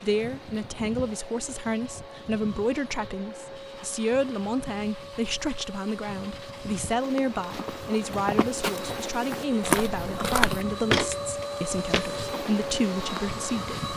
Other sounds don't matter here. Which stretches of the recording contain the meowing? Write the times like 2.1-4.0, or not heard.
not heard.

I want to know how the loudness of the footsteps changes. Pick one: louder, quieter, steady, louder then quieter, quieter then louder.
louder then quieter.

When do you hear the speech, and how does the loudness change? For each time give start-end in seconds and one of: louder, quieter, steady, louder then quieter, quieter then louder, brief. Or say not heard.
0.0-13.9 steady.